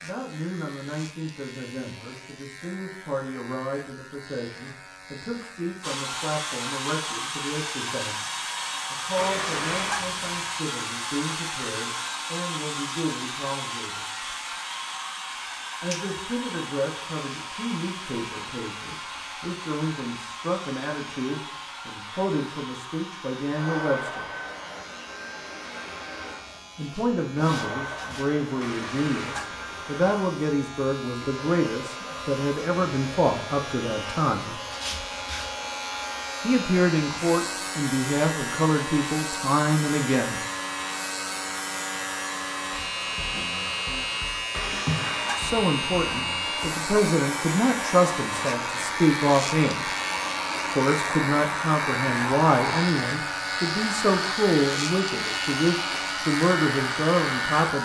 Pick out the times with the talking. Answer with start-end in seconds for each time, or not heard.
0.0-14.1, 15.8-24.3, 26.8-34.5, 36.4-40.4, 45.4-49.9, 50.7-57.8.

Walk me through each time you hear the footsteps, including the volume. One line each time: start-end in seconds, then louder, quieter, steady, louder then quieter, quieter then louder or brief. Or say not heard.
not heard.